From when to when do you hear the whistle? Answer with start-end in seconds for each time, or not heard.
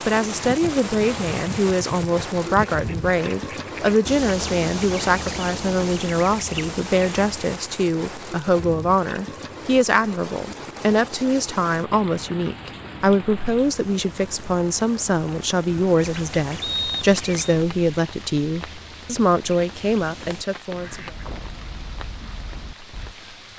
16.6-17.6.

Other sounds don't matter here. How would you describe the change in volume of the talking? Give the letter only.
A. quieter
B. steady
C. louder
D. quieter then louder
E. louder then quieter
B.